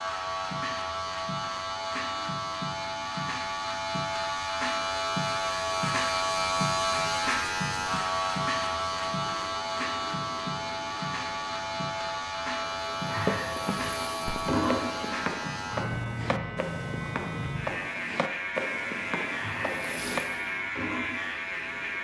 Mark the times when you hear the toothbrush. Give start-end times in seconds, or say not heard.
not heard.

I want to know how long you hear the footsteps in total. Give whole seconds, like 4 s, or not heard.
7 s.